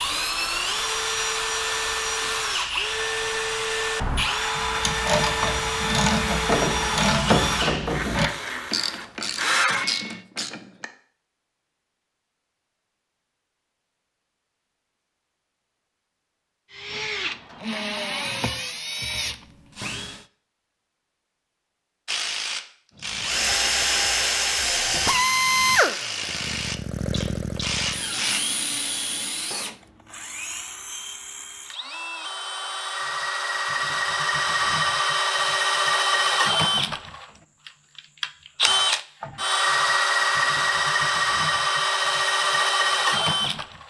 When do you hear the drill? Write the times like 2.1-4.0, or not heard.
0.0-10.2, 16.7-20.2, 23.1-43.8.